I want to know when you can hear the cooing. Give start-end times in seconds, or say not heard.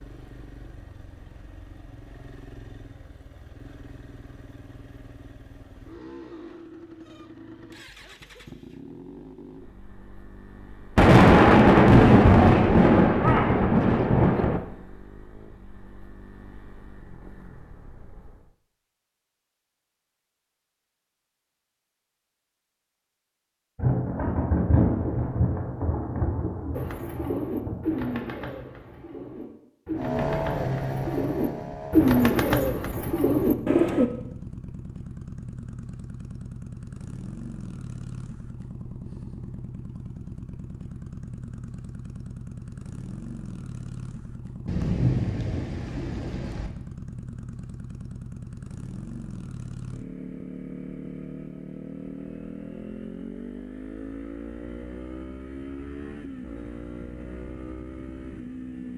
26.8-34.1.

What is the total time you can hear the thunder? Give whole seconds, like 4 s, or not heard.
10 s.